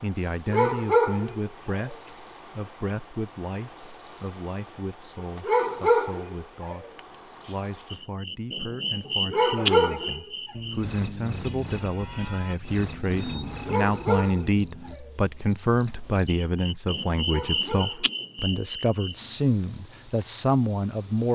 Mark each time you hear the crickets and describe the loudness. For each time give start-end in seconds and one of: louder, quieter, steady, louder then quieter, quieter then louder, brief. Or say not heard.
0.0-21.3 steady.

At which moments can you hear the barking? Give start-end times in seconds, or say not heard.
0.5-1.9, 5.4-6.8, 9.3-10.2, 13.7-15.1, 17.2-18.7.